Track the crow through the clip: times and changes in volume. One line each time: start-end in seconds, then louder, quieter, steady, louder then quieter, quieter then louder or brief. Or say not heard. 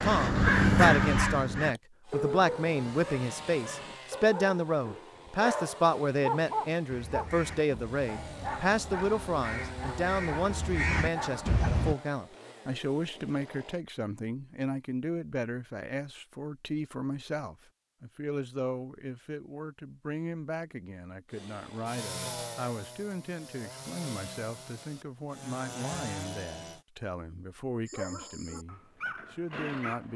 0.0-1.8 brief
6.9-11.9 quieter then louder.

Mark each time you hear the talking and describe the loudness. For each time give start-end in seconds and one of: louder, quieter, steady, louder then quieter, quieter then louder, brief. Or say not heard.
0.0-30.1 quieter.